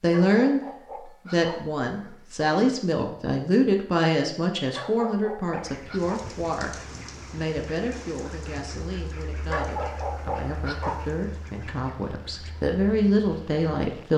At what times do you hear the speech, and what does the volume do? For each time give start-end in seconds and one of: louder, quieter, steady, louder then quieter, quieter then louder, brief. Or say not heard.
0.0-14.1 quieter then louder.